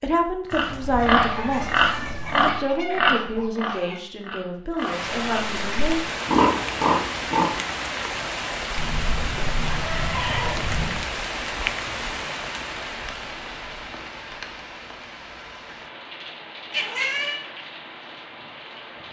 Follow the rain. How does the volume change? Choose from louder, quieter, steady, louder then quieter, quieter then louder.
quieter.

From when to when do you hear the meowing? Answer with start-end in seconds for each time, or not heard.
0.5-2.5, 8.8-11.1, 16.7-17.4.